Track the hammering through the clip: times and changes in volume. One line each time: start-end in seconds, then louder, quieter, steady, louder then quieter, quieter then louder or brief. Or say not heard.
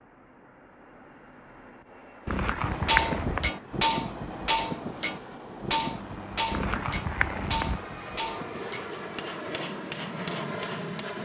2.6-11.1 quieter.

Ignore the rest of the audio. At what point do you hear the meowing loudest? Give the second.
3 s.